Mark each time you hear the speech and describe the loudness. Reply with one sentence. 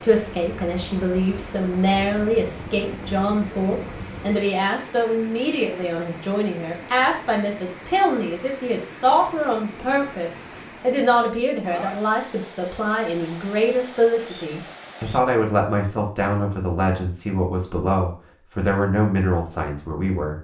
The speech can be heard from 0.0 to 20.3 s, at a steady volume.